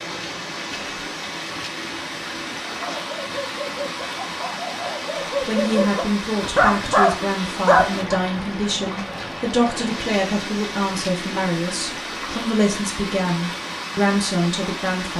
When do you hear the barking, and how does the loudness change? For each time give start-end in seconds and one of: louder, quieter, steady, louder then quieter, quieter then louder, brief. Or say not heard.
2.7-8.2 louder.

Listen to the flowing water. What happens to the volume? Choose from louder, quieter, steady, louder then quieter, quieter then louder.
steady.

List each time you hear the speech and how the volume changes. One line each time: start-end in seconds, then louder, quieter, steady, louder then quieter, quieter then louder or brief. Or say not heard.
5.4-15.1 steady.